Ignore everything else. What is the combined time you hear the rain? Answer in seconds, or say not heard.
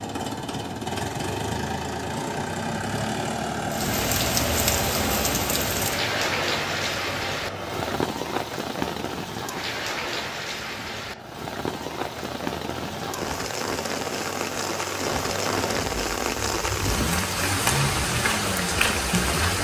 16 s.